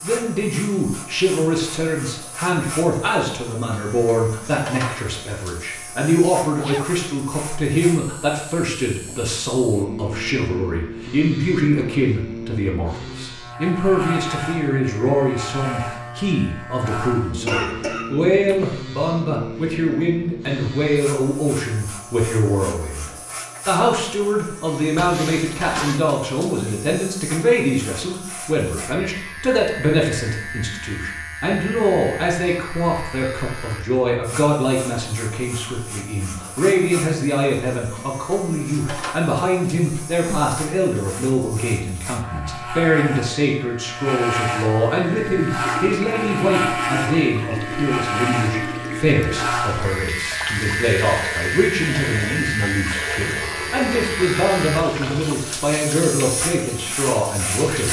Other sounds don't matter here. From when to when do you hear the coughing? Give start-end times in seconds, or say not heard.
17.4-18.8.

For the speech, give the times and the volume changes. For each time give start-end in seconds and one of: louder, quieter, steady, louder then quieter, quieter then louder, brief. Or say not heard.
0.0-57.8 steady.